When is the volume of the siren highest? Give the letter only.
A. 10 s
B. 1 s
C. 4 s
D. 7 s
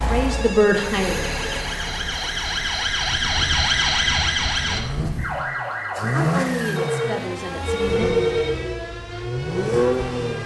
C.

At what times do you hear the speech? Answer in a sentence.
You can hear the speech from 0.0 to 1.4 s and from 6.1 to 8.1 s.